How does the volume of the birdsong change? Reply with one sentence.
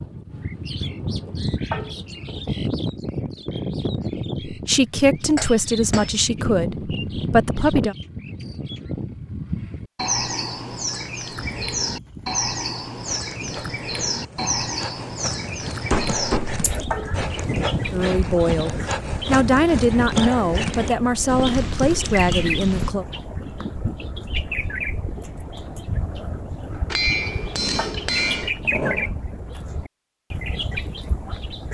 The loudness of the birdsong stays about the same.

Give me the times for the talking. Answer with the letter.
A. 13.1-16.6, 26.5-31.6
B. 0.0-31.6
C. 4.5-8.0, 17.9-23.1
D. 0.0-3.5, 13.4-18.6
C.